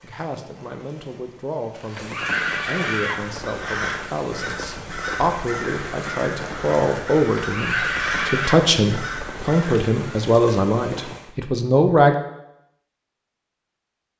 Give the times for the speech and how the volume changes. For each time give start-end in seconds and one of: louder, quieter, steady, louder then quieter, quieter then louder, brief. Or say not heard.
0.0-12.2 louder.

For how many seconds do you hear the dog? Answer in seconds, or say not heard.
not heard.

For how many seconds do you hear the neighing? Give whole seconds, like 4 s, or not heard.
3 s.